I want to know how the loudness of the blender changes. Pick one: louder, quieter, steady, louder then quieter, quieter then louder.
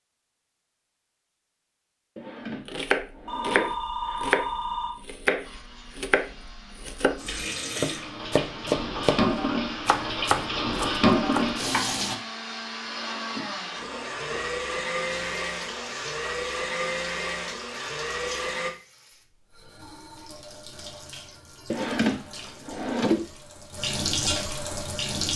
louder.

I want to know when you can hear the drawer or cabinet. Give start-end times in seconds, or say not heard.
2.1-3.8, 12.8-14.6, 21.7-23.3.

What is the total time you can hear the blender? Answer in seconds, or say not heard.
13 s.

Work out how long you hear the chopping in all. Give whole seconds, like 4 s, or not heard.
9 s.